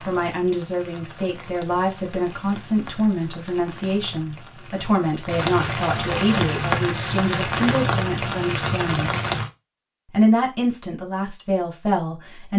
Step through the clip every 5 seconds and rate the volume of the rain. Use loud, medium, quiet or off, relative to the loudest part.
quiet, loud, off.